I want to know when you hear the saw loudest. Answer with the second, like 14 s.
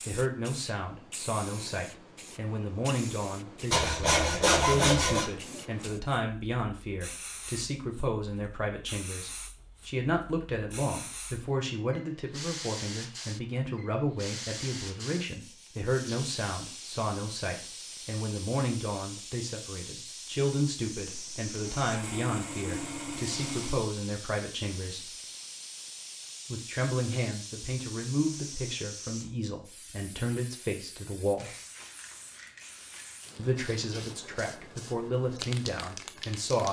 5 s.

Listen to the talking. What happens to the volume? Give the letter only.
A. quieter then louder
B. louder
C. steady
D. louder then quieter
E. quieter
C.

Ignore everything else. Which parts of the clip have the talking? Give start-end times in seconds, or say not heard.
0.0-25.2, 26.5-31.6, 33.4-36.6.